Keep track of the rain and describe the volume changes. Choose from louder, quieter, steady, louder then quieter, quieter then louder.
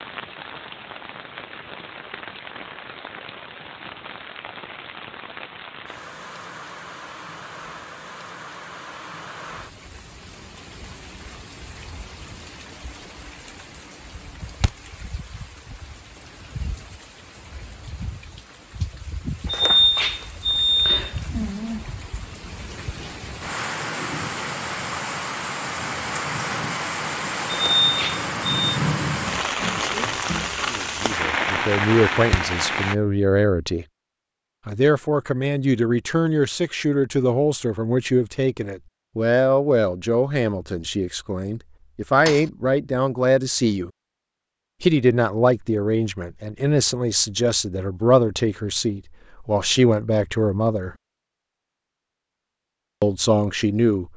louder.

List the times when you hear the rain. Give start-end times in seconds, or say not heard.
0.0-33.0.